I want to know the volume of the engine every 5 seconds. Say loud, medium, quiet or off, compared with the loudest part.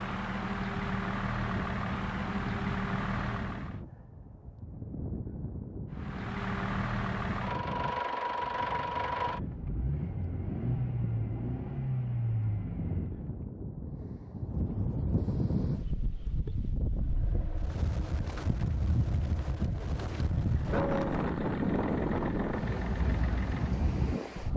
loud, loud, loud, quiet, medium.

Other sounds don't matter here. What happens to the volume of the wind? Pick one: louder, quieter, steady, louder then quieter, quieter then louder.
louder.